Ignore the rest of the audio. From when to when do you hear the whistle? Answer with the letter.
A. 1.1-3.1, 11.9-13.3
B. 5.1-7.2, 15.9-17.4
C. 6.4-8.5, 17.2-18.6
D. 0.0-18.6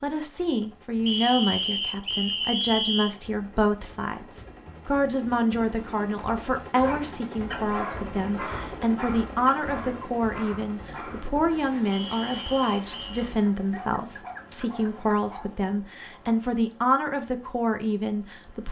A.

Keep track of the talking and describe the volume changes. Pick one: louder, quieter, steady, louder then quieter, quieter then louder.
steady.